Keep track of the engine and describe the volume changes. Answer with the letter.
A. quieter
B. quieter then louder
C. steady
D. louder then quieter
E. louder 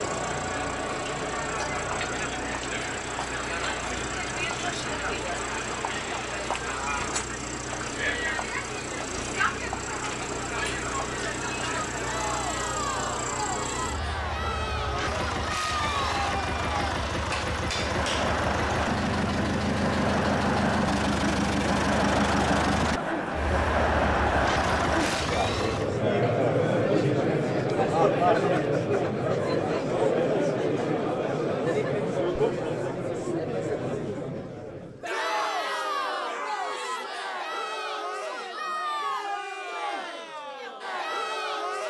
E.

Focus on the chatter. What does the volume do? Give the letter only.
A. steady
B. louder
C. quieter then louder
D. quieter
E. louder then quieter
E.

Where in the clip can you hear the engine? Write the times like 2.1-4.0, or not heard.
0.0-26.1.